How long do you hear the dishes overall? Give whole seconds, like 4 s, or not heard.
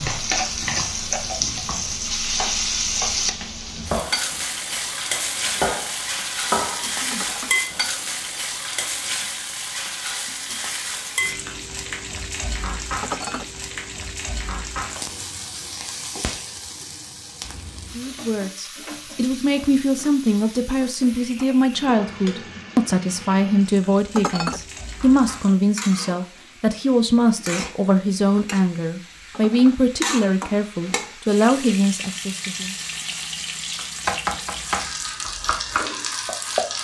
2 s.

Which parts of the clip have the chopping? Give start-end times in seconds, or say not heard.
0.0-4.4, 5.2-7.8, 33.8-36.7.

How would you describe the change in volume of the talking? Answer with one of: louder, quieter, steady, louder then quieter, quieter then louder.
steady.